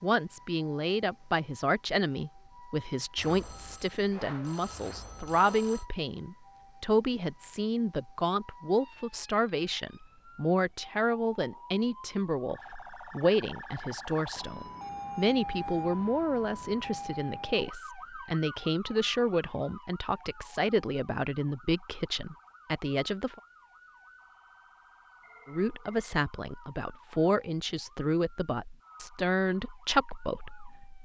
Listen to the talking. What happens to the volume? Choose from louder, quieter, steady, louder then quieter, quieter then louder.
steady.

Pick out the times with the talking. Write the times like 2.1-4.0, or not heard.
0.0-23.4, 25.4-31.0.